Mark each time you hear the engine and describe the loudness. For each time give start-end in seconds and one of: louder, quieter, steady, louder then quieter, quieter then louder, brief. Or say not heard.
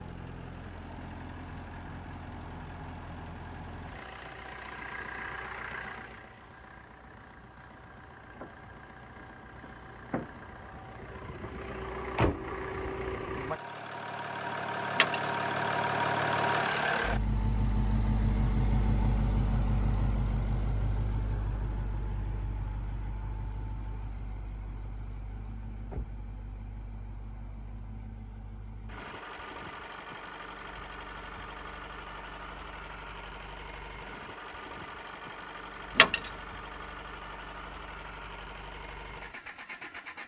0.0-40.2 louder then quieter.